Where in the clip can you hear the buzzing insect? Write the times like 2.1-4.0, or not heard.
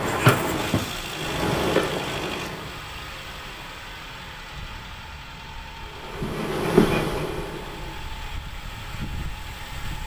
0.0-2.7, 5.8-8.1.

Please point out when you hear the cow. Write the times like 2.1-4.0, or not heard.
not heard.